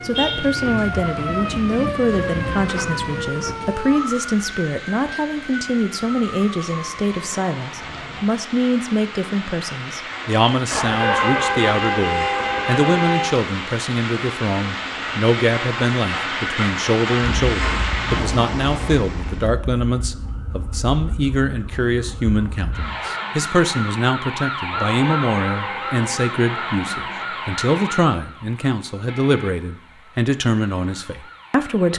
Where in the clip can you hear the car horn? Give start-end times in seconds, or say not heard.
0.1-1.0, 10.7-13.3, 24.7-26.3.